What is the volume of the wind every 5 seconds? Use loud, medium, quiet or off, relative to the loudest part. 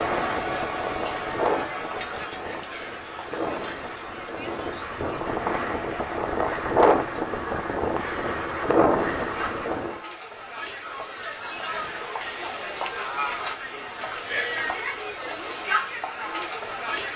medium, loud, off, off.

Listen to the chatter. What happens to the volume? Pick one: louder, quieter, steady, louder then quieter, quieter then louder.
quieter then louder.